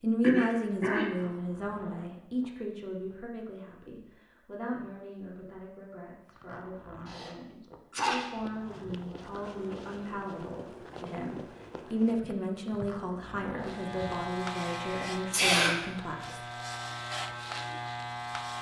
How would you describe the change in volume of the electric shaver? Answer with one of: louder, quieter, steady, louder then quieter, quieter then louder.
quieter then louder.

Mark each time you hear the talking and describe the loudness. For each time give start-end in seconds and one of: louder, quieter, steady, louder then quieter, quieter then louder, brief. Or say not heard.
0.0-16.4 quieter then louder.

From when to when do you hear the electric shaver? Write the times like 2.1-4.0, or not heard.
13.6-18.5.